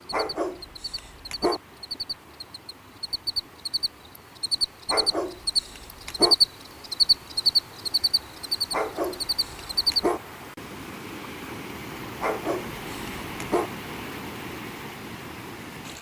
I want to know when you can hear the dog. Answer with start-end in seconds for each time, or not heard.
0.1-1.6, 4.8-6.3, 8.7-10.2, 12.2-13.7.